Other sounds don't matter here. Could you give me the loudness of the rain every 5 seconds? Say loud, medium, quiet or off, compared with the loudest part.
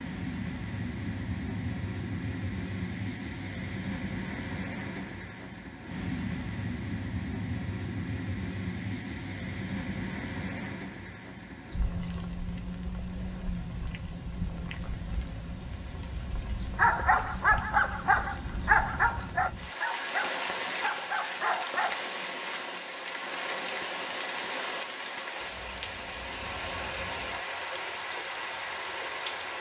loud, loud, loud, medium, loud, loud.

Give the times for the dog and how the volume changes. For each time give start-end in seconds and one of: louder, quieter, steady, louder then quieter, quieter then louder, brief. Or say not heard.
16.6-22.0 quieter.